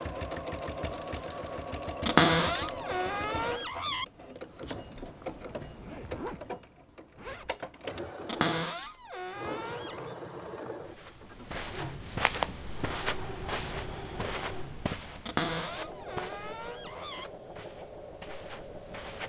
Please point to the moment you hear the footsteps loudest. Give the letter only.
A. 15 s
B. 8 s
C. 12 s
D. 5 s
C.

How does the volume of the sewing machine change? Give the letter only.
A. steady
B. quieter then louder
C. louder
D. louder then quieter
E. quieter
E.